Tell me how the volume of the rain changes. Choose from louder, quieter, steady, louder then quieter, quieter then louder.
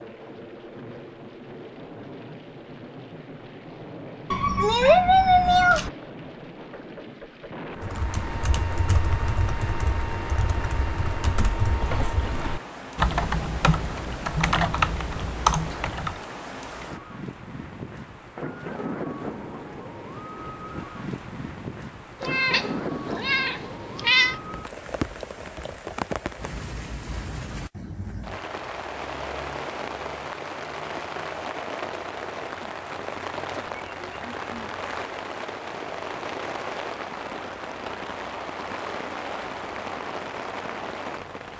louder.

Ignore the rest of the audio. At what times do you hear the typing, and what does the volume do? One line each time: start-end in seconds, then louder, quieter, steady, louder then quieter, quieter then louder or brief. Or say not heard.
7.8-16.2 louder.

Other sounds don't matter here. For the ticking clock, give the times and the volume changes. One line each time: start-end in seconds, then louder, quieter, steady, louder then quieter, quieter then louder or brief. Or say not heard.
not heard.